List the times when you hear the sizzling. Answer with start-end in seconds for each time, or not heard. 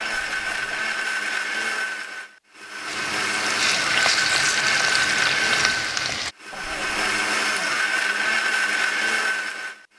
2.9-6.3.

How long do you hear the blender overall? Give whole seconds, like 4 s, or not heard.
10 s.